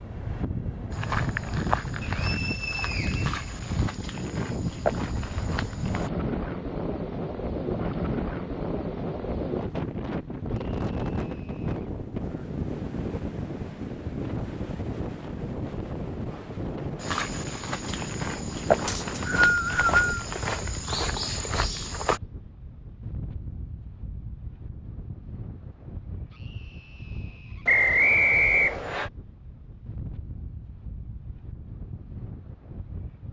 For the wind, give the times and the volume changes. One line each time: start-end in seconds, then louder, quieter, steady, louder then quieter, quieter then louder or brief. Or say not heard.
0.0-33.2 quieter.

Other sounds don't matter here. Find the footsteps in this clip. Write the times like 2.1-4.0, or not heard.
0.9-6.1, 17.0-22.2.